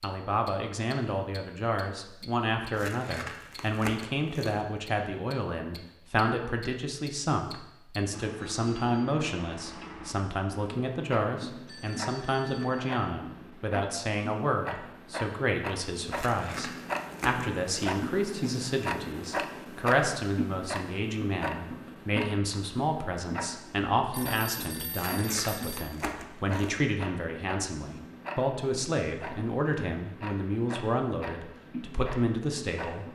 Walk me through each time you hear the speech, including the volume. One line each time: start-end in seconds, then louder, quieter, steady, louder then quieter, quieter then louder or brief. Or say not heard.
0.0-33.1 steady.